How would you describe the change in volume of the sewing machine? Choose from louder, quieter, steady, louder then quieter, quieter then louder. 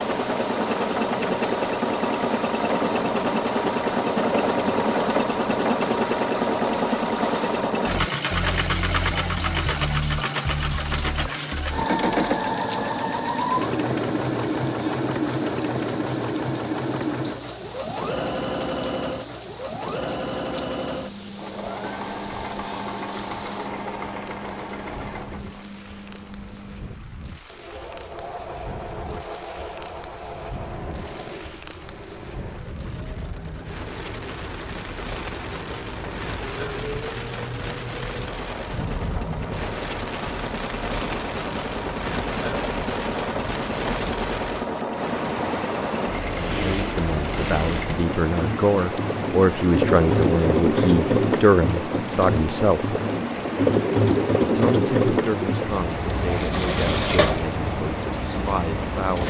quieter then louder.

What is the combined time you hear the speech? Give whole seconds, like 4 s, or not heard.
11 s.